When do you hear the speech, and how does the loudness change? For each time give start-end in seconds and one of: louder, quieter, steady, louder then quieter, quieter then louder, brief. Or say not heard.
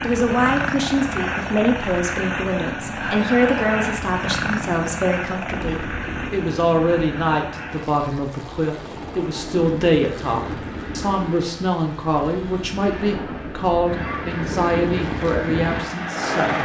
0.0-16.5 steady.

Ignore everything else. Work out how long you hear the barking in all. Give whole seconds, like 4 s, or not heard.
not heard.